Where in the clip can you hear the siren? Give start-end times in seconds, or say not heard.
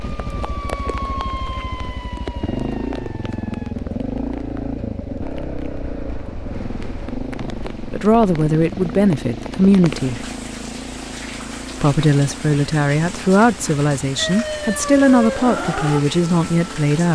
0.0-3.8, 14.2-16.9.